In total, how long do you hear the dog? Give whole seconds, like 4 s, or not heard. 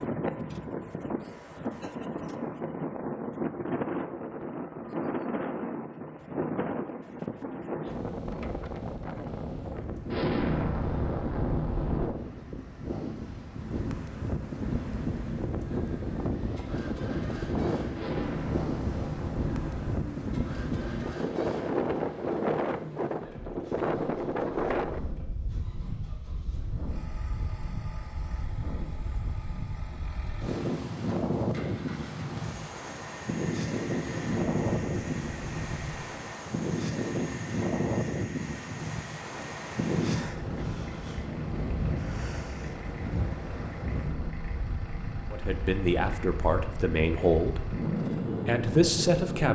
not heard.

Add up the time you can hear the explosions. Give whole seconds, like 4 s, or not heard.
6 s.